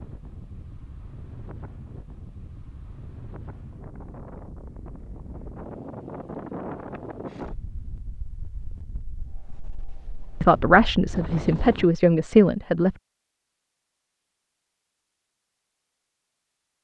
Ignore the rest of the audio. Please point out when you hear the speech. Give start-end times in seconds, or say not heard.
10.4-12.9.